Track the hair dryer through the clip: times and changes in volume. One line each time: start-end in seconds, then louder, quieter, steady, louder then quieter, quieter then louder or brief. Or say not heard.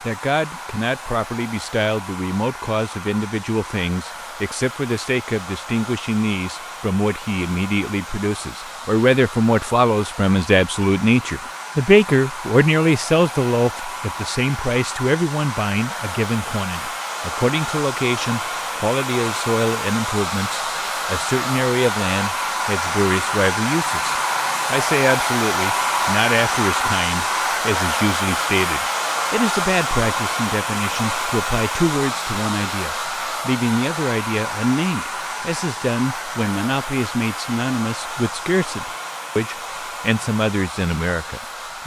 0.0-41.8 louder then quieter.